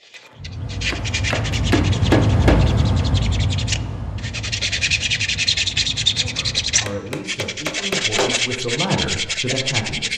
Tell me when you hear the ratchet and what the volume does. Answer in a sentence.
You can't hear the ratchet here.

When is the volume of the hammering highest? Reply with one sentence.
The loudest moment of the hammering is at 2 seconds.